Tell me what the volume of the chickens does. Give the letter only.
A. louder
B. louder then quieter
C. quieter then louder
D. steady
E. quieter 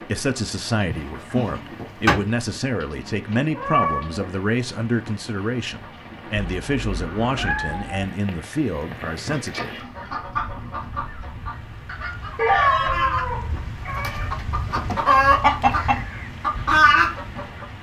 A.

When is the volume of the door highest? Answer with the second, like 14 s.
2 s.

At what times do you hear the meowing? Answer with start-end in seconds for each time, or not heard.
3.5-4.3, 6.3-7.9, 12.3-14.3.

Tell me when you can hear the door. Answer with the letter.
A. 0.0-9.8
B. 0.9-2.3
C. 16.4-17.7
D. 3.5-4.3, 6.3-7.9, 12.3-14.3
B.